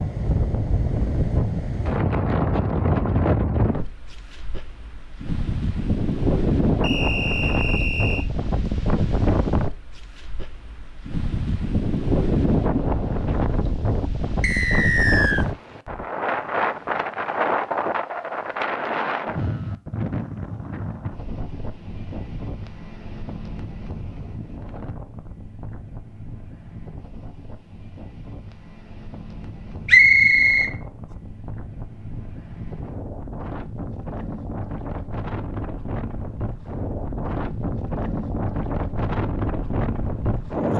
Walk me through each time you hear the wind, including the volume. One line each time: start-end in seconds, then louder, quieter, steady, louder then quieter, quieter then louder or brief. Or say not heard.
0.0-40.7 quieter then louder.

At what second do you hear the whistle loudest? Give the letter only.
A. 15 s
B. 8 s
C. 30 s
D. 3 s
C.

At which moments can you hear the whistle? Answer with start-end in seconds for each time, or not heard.
6.8-8.2, 14.4-15.4, 29.9-30.7.